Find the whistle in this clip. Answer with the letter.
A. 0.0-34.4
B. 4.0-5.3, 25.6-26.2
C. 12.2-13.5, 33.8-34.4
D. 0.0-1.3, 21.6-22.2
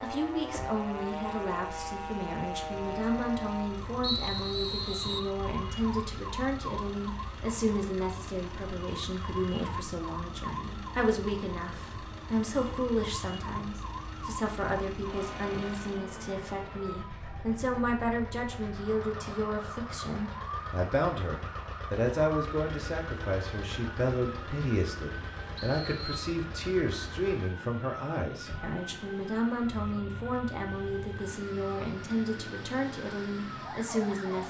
B.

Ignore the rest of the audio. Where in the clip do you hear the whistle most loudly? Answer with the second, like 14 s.
4 s.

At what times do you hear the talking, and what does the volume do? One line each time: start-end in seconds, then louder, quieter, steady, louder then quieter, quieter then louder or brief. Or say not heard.
0.0-34.4 steady.